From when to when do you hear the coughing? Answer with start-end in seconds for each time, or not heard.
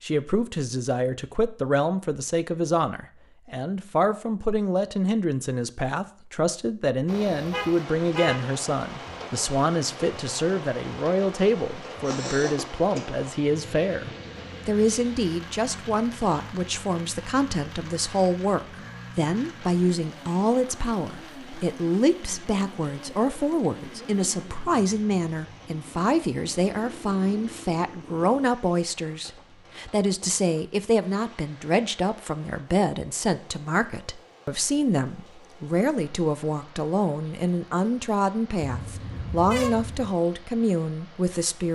12.0-13.0.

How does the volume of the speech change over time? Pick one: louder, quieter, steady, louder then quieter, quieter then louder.
steady.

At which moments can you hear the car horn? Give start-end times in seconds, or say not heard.
7.5-8.4, 38.6-40.1.